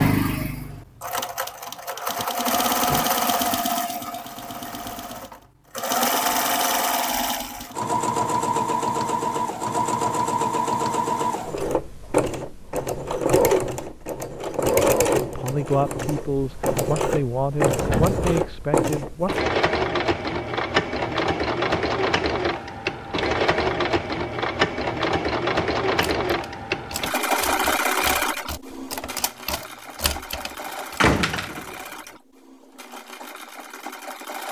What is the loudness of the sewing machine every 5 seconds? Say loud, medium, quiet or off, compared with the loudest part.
loud, loud, loud, loud, loud, loud, quiet.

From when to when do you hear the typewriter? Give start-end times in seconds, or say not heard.
26.2-31.0.